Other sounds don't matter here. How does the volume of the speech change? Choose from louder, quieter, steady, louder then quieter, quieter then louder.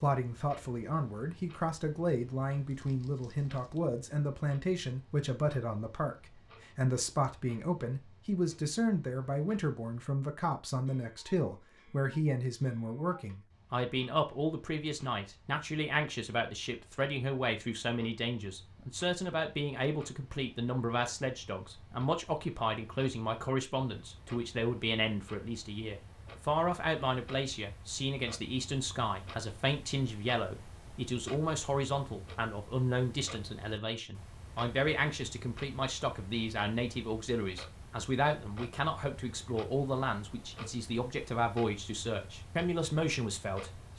steady.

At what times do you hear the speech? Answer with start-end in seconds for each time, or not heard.
0.0-43.9.